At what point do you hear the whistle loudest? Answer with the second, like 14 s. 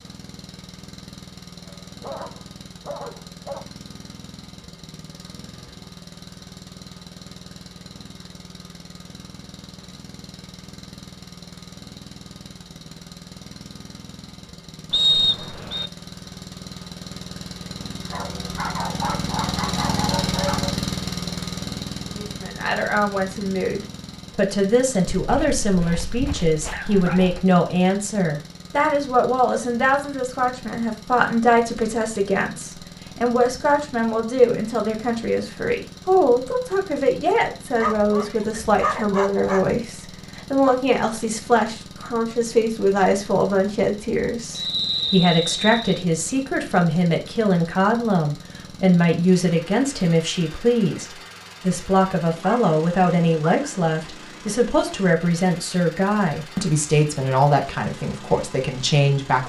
15 s.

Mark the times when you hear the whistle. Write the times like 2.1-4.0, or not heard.
14.9-15.9, 44.5-46.0.